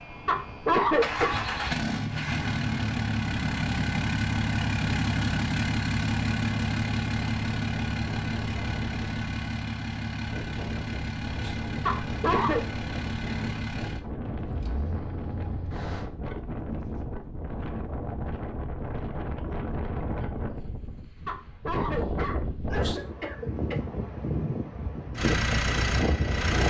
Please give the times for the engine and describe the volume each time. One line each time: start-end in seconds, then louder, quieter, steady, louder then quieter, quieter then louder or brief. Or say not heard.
0.0-16.1 quieter
25.1-26.6 brief.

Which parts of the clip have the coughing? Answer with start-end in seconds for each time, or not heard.
0.2-1.4, 11.8-12.7, 21.2-23.9.